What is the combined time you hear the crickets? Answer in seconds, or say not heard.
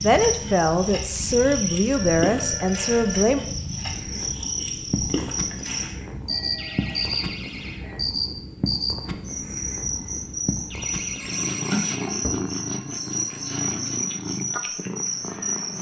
16 s.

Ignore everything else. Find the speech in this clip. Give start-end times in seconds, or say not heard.
0.0-3.4.